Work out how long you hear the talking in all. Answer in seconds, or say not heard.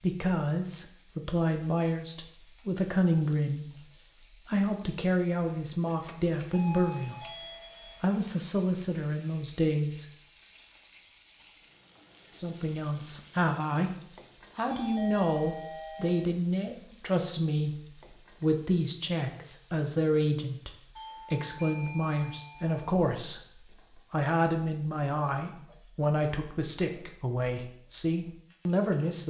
25 s.